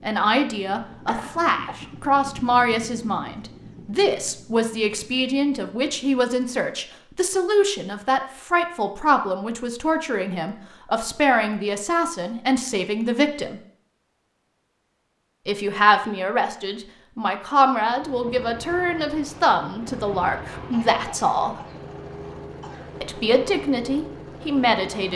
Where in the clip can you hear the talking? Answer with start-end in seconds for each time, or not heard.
0.0-13.6, 15.4-21.6, 23.0-25.1.